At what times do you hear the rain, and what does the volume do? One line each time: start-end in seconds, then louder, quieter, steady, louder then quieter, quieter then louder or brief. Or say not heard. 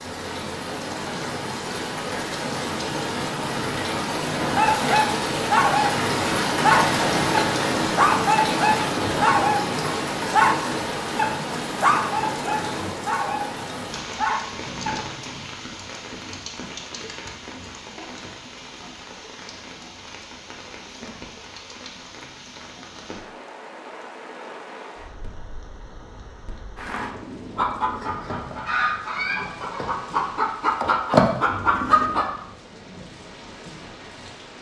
0.0-34.5 quieter.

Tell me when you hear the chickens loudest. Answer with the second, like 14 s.
31 s.